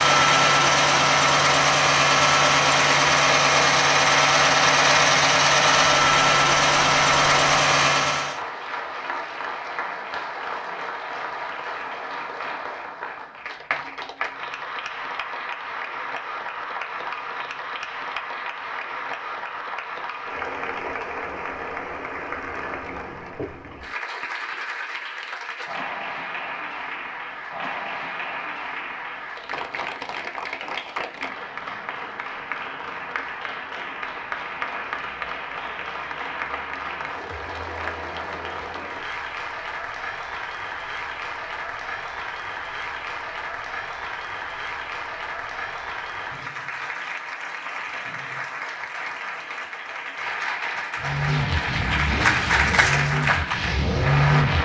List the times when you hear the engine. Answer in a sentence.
You can hear the engine from 0.0 to 8.4 s and from 51.0 to 54.5 s.